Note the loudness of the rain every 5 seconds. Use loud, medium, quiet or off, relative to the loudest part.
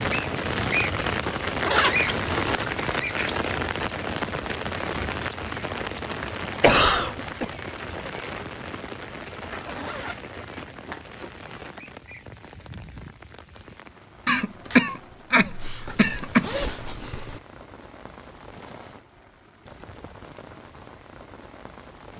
loud, medium, quiet, quiet, quiet.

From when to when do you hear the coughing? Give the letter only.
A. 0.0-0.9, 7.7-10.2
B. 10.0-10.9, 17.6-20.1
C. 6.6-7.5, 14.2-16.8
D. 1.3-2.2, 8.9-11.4
C.